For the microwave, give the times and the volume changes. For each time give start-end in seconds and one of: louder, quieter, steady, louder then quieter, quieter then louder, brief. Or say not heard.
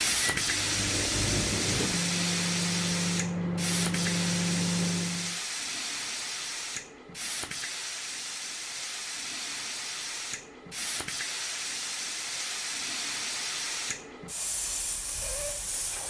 0.0-5.4 louder.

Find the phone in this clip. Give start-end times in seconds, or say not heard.
not heard.